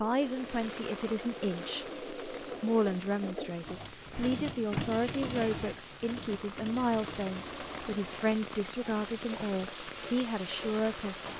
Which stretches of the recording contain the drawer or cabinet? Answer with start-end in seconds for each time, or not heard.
4.1-5.8.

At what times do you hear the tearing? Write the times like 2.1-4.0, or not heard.
not heard.